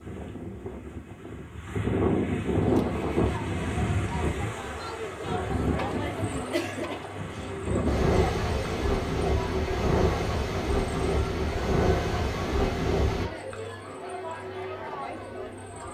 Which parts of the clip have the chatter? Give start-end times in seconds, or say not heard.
2.6-15.8.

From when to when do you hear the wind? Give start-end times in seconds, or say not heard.
0.0-13.3.